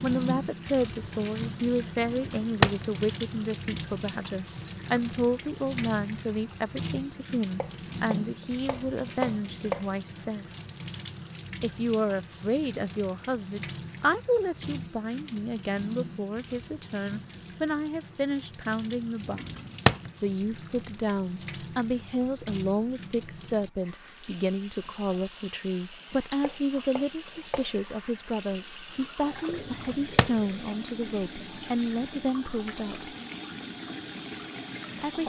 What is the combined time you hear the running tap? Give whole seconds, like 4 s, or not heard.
35 s.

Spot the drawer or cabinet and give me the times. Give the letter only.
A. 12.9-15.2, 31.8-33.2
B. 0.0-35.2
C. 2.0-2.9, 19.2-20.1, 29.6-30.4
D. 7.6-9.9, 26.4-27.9
C.